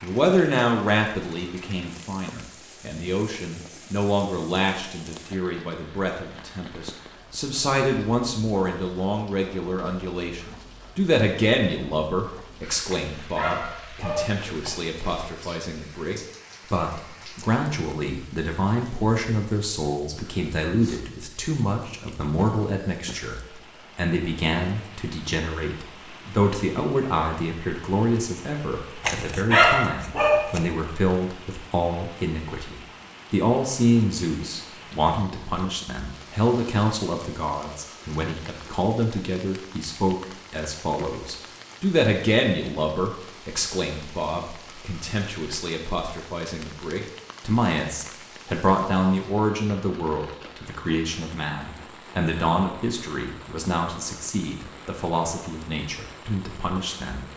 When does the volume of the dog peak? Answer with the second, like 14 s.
30 s.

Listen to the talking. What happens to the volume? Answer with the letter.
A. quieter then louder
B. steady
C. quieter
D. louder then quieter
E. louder
B.